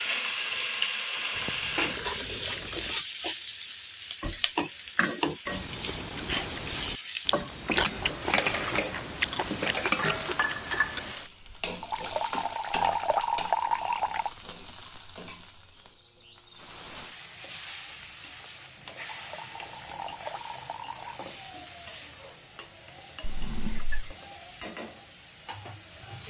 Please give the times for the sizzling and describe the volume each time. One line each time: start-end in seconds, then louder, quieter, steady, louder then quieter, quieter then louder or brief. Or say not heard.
0.0-26.2 quieter.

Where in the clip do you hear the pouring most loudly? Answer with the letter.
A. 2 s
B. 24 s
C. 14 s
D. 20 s
C.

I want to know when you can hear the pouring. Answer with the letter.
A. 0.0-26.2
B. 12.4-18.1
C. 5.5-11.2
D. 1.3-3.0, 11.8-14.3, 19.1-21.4
D.